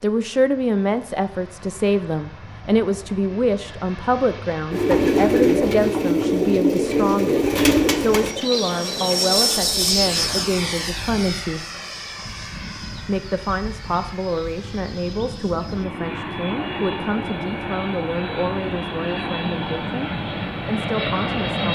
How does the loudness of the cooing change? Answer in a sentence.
The loudness of the cooing goes down.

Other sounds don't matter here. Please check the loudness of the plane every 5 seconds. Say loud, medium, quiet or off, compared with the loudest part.
quiet, loud, medium, medium, loud.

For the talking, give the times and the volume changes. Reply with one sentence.
The talking can be heard from 0.0 to 11.6 s, at a steady volume; and from 13.1 to 21.7 s, at a steady volume.